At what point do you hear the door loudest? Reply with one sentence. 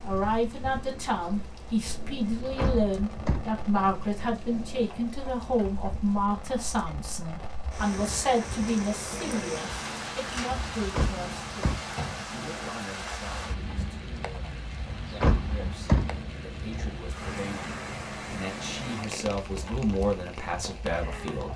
The loudest moment of the door is at 16 seconds.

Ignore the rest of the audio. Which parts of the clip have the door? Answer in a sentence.
You can hear the door from 2.2 to 3.5 s, from 10.8 to 11.8 s and from 14.9 to 16.2 s.